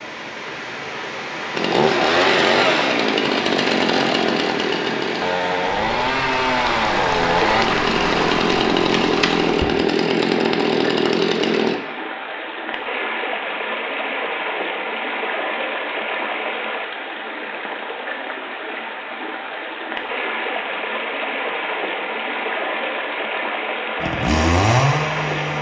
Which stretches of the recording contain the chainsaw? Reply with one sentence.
The chainsaw can be heard from 1.5 to 11.8 s and from 24.0 to 25.5 s.